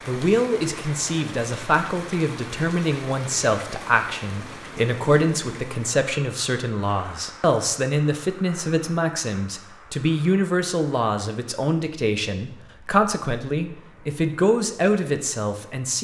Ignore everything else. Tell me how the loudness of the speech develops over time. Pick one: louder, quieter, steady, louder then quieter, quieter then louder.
steady.